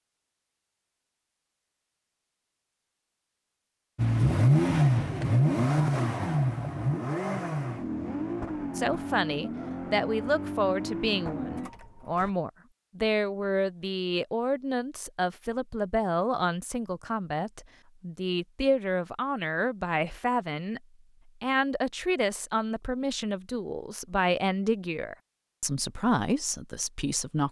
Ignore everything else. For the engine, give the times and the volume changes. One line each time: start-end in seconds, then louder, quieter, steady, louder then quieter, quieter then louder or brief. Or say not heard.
4.0-12.3 quieter.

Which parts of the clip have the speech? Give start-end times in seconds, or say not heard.
8.8-20.8, 21.4-27.4.